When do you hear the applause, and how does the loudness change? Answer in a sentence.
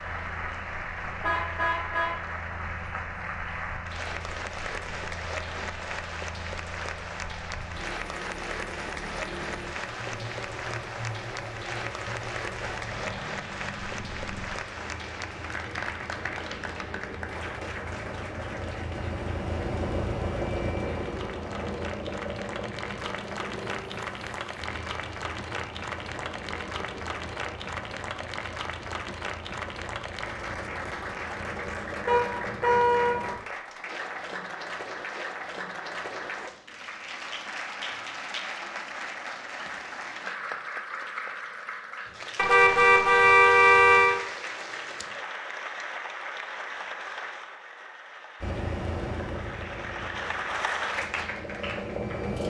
You can hear the applause from 0.0 to 52.4 s, at a steady volume.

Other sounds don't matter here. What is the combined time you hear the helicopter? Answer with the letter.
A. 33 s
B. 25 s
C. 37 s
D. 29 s
C.